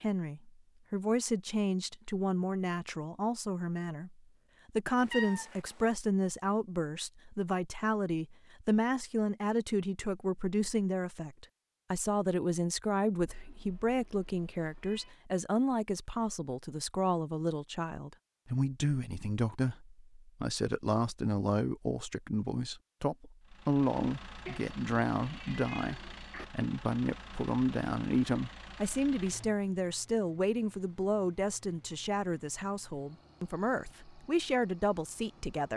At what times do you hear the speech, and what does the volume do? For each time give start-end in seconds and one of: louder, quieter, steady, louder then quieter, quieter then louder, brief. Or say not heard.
0.0-35.7 steady.